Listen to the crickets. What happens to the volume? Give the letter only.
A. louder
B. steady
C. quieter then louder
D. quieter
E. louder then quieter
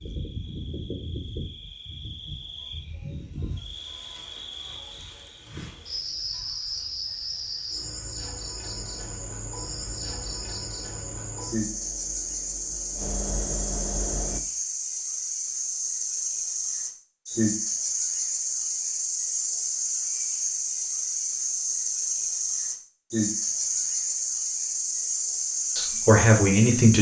A.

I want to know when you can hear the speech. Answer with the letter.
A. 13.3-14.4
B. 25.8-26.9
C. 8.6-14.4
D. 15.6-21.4
B.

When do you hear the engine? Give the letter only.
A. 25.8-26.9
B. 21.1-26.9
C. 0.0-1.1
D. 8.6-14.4
D.